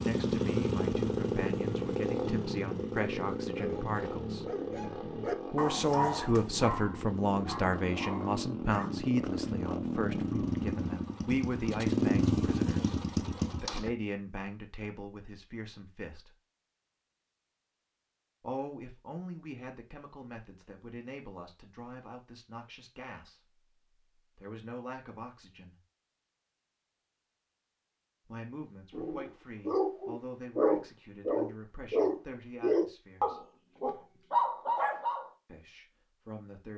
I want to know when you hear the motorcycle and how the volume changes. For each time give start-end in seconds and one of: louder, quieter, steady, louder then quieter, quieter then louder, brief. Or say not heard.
0.0-13.9 quieter then louder.